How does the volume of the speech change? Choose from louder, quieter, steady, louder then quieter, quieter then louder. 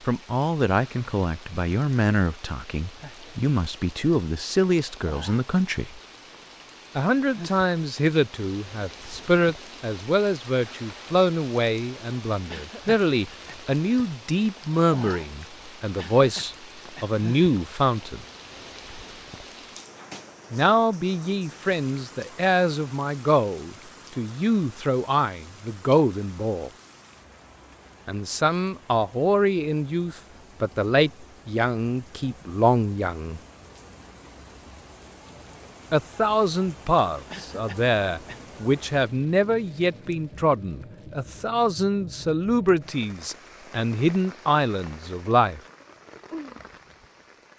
steady.